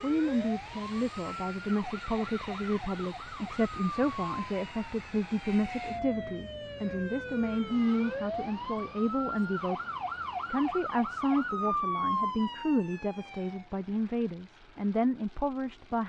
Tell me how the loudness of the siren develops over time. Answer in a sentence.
The loudness of the siren goes up.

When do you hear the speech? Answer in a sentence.
The speech can be heard from 0.0 to 9.8 s and from 10.5 to 16.0 s.